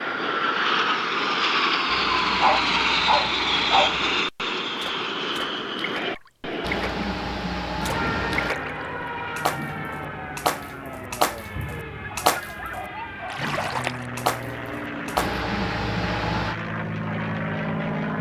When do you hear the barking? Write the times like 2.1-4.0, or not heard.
2.4-4.0, 12.0-13.5.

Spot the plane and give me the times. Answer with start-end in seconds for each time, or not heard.
0.0-18.1.